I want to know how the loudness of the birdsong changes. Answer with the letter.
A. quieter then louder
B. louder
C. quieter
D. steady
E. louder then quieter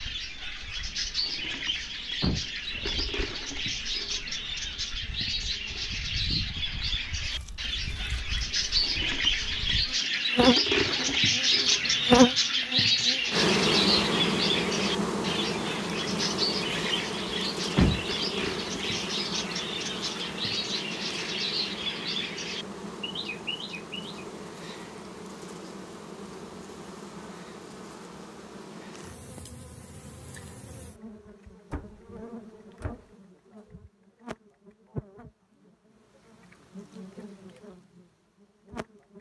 E.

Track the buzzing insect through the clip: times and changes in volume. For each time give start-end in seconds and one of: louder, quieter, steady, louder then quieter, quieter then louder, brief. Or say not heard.
0.0-39.1 louder then quieter.